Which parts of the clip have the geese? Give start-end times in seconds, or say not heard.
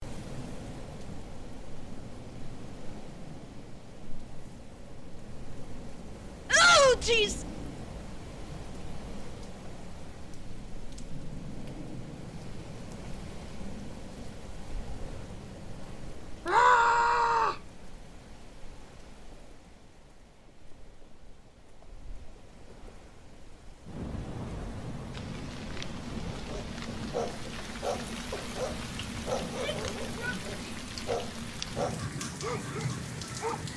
not heard.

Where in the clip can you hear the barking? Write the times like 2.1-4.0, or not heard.
26.2-33.7.